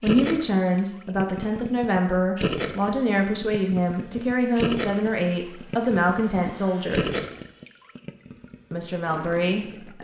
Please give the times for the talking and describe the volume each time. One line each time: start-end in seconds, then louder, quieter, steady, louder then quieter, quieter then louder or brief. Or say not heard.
0.0-7.3 steady
8.7-9.9 brief.